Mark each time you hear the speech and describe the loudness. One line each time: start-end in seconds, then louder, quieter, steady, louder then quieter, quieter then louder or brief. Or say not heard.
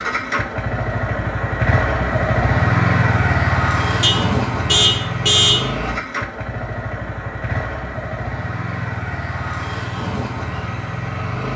not heard.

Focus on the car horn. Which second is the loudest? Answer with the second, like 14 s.
5 s.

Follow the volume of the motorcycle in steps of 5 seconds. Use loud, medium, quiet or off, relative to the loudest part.
loud, medium, medium.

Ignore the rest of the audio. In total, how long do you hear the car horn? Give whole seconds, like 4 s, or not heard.
2 s.